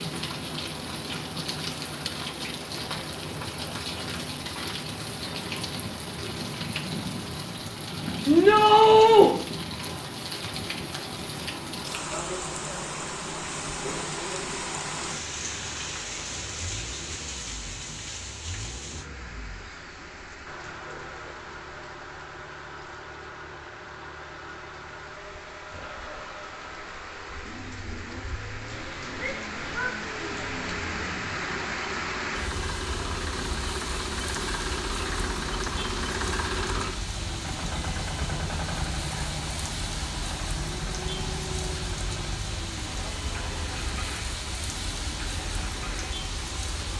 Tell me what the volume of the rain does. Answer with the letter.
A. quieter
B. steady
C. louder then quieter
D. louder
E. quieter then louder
E.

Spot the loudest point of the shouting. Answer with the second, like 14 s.
9 s.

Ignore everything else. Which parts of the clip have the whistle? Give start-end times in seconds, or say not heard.
not heard.